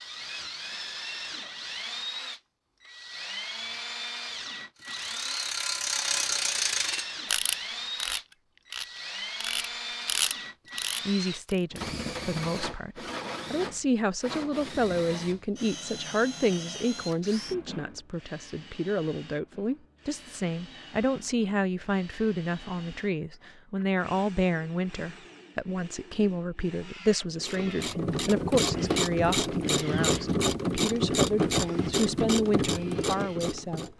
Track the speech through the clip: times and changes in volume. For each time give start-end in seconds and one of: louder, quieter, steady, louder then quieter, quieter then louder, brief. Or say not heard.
11.1-33.9 steady.